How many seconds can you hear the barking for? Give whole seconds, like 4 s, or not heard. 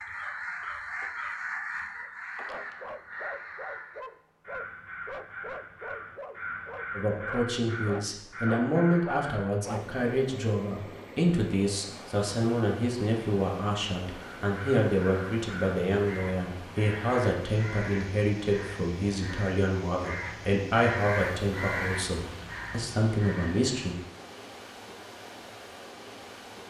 8 s.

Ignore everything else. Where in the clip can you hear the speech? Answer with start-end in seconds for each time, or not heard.
7.0-23.9.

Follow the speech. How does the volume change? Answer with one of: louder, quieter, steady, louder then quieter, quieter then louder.
steady.